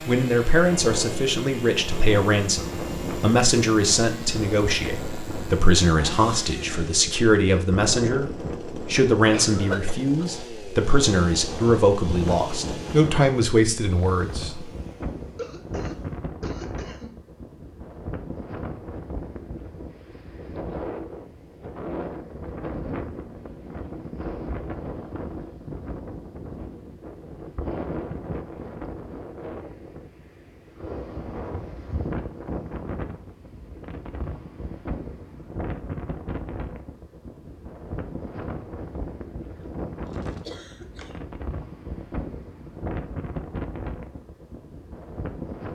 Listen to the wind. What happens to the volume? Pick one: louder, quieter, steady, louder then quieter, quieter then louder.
steady.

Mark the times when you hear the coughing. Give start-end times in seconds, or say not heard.
9.3-10.2, 15.3-17.1, 39.5-41.4.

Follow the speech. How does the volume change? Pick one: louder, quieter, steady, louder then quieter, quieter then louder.
steady.